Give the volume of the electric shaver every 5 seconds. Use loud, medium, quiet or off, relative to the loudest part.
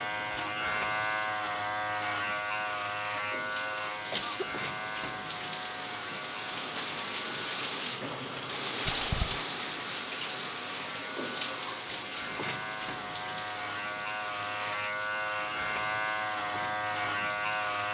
loud, medium, medium, loud.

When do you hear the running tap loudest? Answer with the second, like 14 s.
9 s.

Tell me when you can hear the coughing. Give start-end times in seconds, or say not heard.
4.1-4.7.